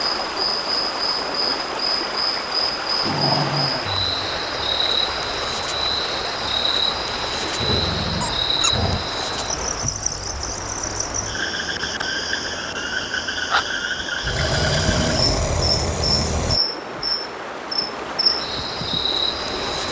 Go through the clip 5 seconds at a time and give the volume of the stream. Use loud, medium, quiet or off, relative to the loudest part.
loud, loud, medium, loud.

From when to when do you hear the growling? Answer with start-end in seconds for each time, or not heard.
2.8-4.4, 7.5-9.1, 14.2-16.6.